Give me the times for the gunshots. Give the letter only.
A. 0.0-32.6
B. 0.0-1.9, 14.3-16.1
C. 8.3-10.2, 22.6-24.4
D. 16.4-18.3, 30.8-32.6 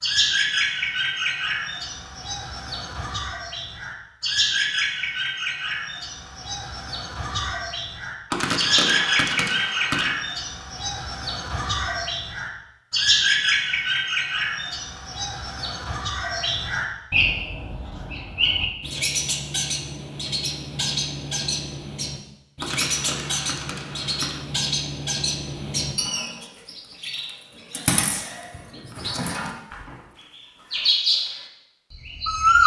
C.